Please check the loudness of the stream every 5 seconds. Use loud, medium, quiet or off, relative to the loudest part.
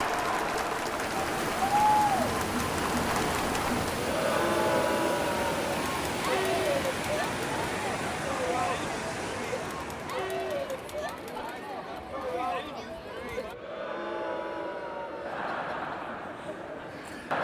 loud, loud, quiet, quiet.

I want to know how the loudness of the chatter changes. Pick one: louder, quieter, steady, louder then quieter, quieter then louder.
quieter.